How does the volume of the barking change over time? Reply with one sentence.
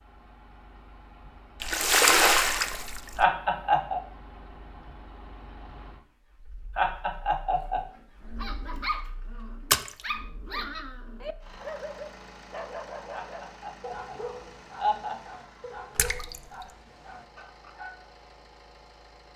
The volume of the barking goes down.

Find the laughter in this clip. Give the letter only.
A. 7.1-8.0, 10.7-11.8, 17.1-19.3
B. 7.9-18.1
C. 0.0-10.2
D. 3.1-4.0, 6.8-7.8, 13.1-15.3
D.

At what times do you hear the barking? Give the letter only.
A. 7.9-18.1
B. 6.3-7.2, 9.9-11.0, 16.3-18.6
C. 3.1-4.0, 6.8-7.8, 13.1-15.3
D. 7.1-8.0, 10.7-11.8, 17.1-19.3
A.